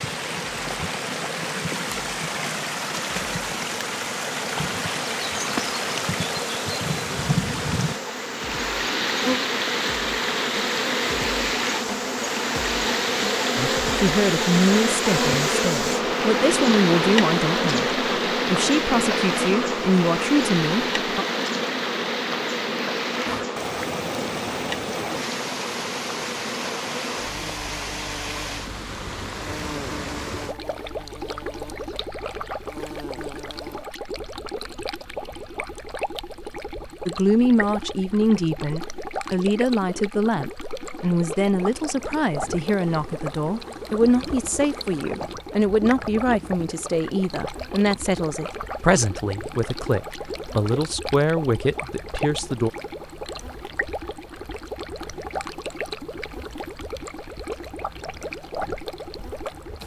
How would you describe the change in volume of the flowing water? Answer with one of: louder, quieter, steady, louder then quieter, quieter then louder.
quieter.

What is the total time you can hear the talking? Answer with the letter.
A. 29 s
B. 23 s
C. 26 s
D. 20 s
B.